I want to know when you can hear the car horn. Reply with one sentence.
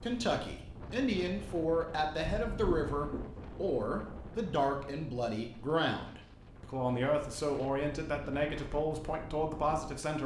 The car horn can be heard from 2.2 to 3.3 s.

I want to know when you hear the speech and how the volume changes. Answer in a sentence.
The speech can be heard from 0.0 to 10.2 s, at a steady volume.